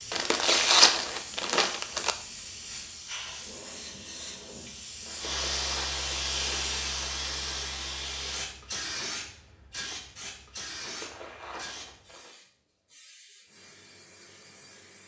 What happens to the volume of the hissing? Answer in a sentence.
The loudness of the hissing goes up, then down.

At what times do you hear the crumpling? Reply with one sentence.
The crumpling can be heard from 0.1 to 2.1 s, from 5.0 to 7.0 s and from 10.8 to 12.3 s.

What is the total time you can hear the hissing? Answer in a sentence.
The hissing can be heard for 15 seconds in total.